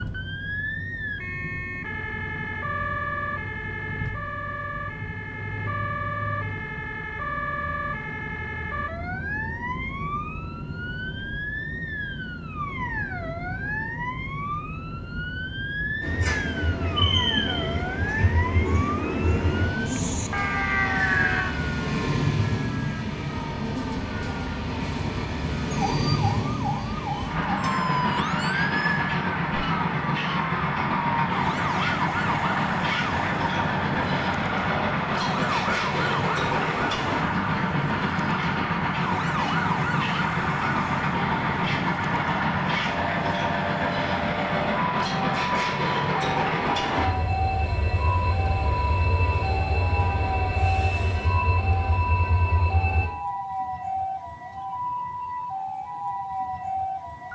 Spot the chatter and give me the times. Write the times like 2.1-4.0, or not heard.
not heard.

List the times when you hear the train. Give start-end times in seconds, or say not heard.
16.0-53.1.